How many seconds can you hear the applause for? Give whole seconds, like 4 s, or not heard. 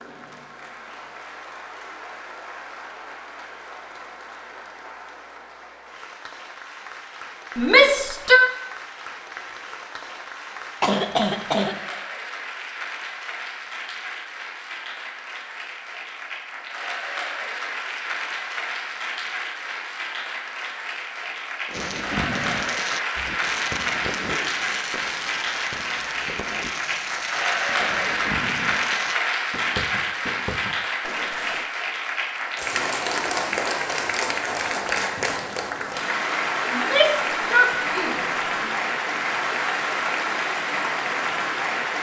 42 s.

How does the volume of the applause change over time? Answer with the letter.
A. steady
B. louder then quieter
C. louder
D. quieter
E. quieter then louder
C.